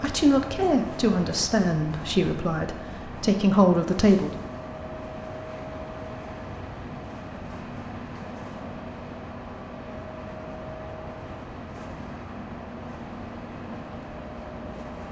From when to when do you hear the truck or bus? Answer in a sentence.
You can hear the truck or bus from 0.0 to 15.0 s.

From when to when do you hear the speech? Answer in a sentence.
You can hear the speech from 0.0 to 4.4 s.